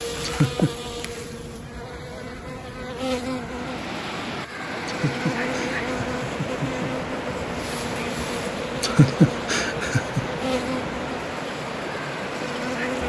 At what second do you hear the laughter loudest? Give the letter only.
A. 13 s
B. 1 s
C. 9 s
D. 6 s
C.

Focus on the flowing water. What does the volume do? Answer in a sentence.
The volume of the flowing water stays about the same.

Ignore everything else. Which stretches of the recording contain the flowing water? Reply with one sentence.
You can hear the flowing water from 3.4 to 13.0 s.